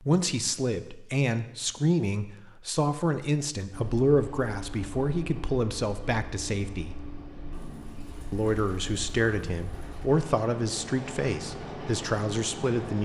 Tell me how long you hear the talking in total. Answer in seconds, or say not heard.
12 s.